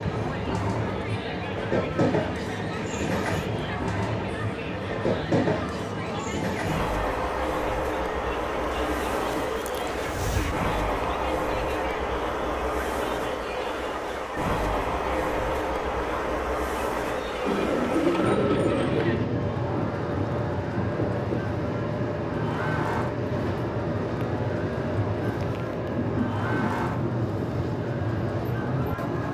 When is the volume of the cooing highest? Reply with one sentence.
The loudest moment of the cooing is at 18 seconds.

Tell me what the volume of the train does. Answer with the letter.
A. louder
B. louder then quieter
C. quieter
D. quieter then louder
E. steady
E.